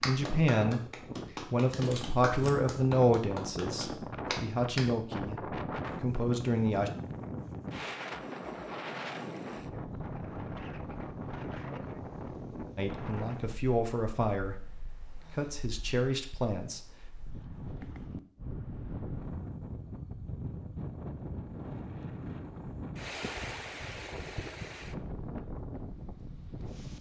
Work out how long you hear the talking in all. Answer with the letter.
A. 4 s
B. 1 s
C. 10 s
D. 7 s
C.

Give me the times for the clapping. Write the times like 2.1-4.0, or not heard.
0.0-4.8.